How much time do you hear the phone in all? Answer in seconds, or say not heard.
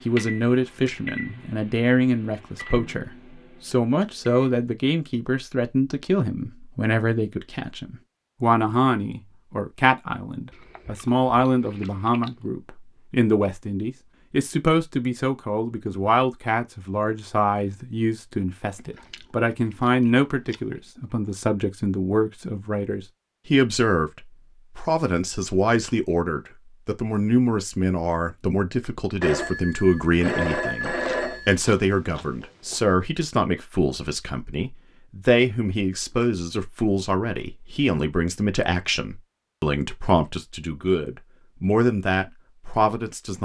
2 s.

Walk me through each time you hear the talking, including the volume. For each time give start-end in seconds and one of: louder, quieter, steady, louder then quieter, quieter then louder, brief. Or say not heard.
0.1-43.4 steady.